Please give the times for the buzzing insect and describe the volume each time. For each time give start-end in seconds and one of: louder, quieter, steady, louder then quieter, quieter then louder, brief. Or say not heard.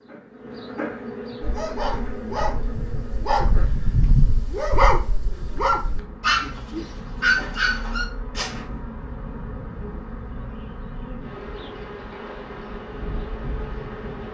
0.0-14.3 quieter then louder.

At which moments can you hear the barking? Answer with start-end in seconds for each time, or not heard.
1.4-8.8.